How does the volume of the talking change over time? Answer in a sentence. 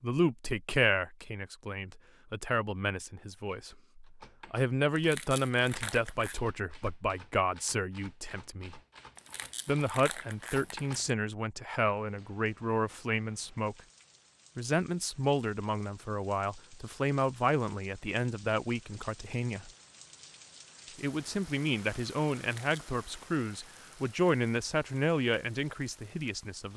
The volume of the talking stays about the same.